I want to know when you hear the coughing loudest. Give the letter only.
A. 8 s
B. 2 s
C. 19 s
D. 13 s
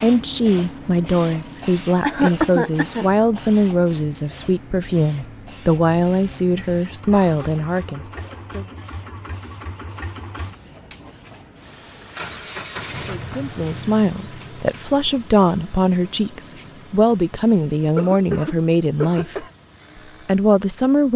B.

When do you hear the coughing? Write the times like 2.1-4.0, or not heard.
2.0-3.0, 7.1-8.4, 17.9-19.5.